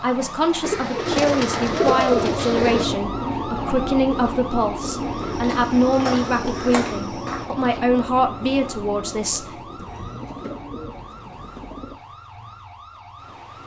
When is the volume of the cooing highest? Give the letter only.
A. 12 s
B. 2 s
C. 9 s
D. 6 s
B.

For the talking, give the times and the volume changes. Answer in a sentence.
You can hear the talking from 0.0 to 9.4 s, at a steady volume.